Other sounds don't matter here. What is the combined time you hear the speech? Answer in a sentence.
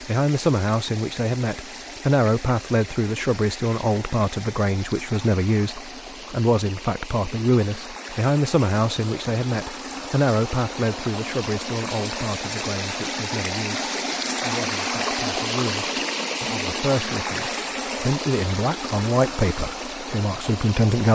You can hear the speech for 21 seconds altogether.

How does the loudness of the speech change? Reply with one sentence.
The loudness of the speech goes down, then up.